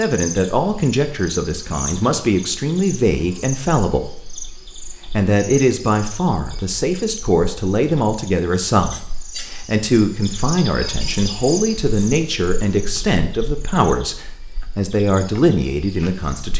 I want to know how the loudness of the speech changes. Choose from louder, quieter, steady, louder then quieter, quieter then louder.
steady.